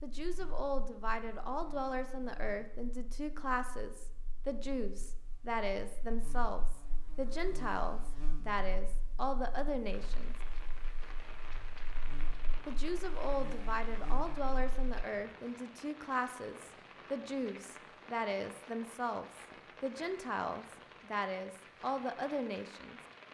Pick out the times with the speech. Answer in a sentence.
The speech can be heard from 0.0 to 10.3 s and from 12.7 to 23.0 s.